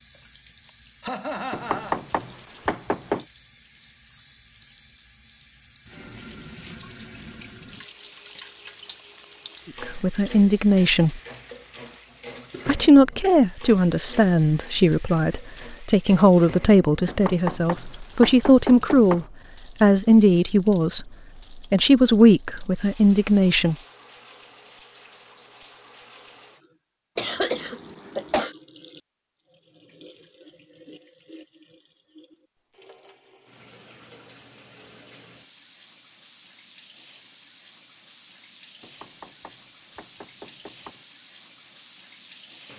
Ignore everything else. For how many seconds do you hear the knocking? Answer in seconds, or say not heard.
6 s.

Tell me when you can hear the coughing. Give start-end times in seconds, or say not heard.
1.0-2.0, 27.1-28.6.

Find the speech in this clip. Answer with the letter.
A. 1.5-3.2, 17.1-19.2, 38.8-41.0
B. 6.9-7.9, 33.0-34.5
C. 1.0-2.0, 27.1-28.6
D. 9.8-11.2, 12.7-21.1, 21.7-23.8
D.